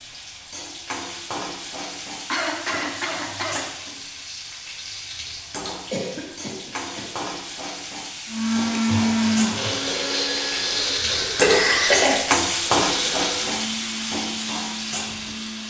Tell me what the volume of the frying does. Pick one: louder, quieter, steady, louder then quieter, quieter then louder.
louder.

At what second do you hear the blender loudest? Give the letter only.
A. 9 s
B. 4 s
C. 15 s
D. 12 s
A.